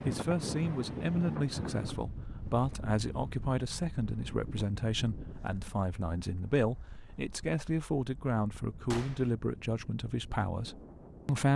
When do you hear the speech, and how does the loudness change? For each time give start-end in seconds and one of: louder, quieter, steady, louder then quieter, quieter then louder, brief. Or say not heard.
0.1-11.5 steady.